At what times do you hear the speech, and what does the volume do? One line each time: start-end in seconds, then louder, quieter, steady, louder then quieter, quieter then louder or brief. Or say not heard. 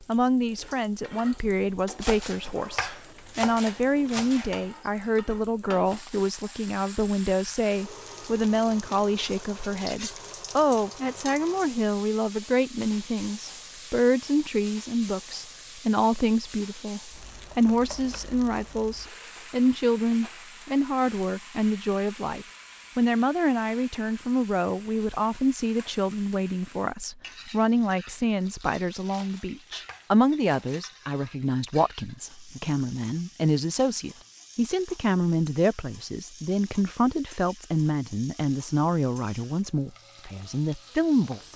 0.0-41.5 steady.